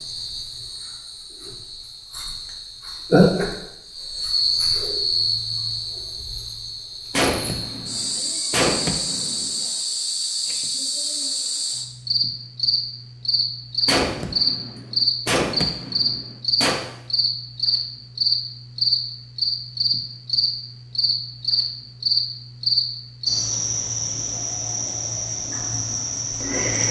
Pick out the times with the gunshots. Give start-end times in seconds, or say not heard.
7.1-9.6, 13.8-16.8.